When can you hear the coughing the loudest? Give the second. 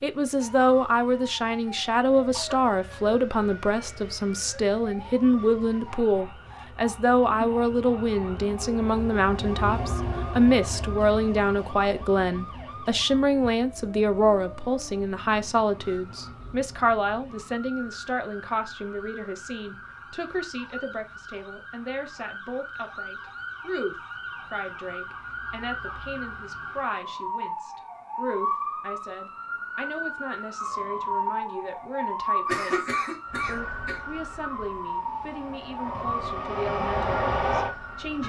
33 s.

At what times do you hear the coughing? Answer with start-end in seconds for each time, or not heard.
2.1-3.1, 32.5-34.0.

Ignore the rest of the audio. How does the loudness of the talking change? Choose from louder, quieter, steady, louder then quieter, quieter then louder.
quieter.